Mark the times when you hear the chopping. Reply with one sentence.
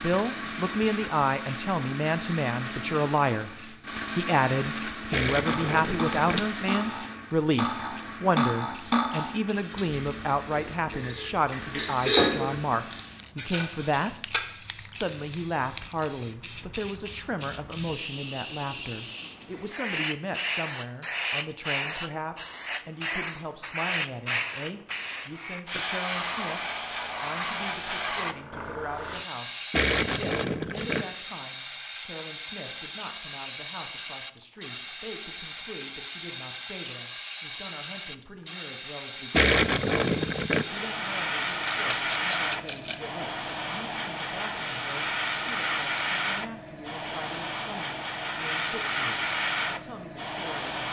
The chopping can't be heard in this clip.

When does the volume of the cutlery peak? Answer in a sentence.
The volume of the cutlery peaks at 12 seconds.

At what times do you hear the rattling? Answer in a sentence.
You can hear the rattling from 5.9 to 6.6 s and from 41.6 to 43.1 s.